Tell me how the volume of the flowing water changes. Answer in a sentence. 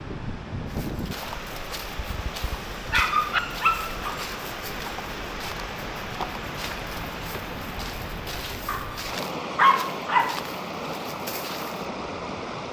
The loudness of the flowing water stays about the same.